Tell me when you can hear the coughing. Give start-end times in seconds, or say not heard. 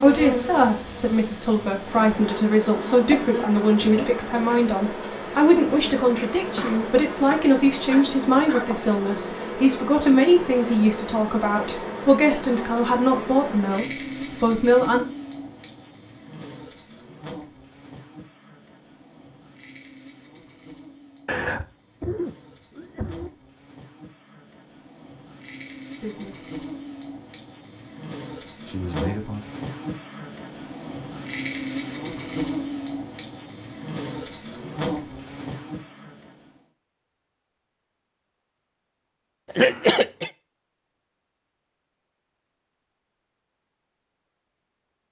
6.5-8.7, 21.2-23.3, 39.5-40.3.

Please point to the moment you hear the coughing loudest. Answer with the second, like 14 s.
40 s.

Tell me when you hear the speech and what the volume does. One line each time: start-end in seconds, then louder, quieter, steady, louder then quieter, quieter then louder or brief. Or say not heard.
0.0-15.1 steady
26.0-26.6 brief
28.6-29.4 brief.